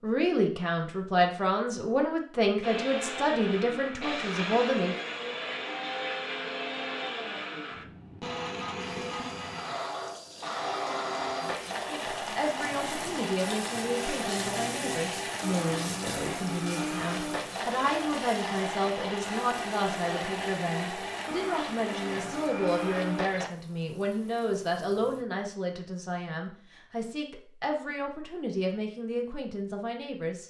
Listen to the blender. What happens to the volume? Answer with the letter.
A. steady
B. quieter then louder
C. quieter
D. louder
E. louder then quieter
A.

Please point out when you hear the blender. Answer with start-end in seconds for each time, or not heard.
2.6-23.5.